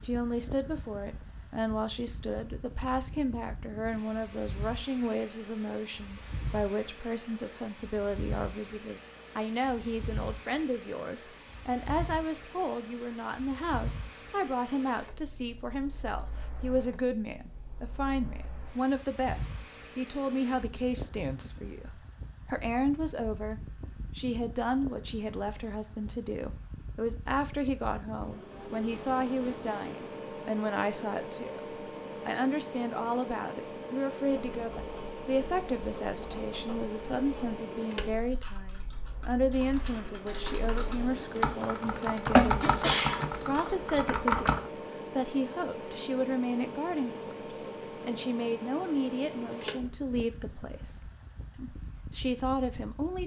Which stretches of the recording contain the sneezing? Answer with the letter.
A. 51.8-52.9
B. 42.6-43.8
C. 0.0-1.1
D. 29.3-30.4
B.